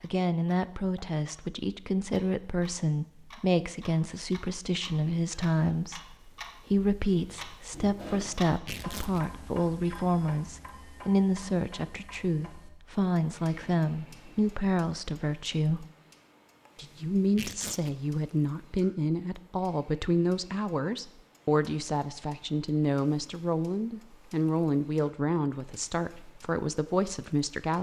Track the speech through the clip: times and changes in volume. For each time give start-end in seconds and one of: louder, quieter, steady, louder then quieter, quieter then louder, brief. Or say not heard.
0.0-15.8 steady
16.8-27.7 steady.